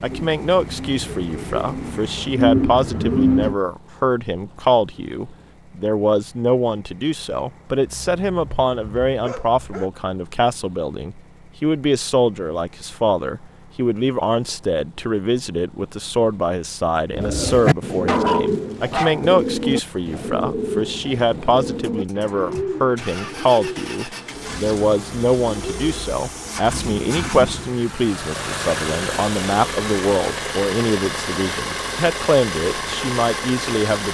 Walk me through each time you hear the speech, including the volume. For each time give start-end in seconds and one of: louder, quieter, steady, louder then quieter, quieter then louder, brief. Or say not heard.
0.0-34.0 steady.